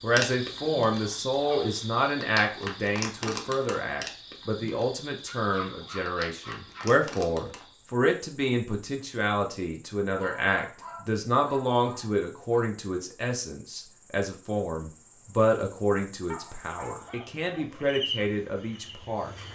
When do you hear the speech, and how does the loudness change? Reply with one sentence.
You can hear the speech from 0.0 to 19.3 s, at a steady volume.